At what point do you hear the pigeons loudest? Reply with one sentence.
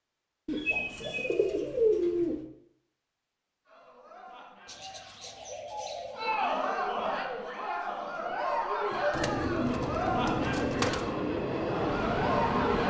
The volume of the pigeons peaks at 2 seconds.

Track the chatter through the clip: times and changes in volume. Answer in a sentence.
You can hear the chatter from 3.6 to 12.8 s, getting louder.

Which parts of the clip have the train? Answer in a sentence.
You can hear the train from 9.6 to 12.8 s.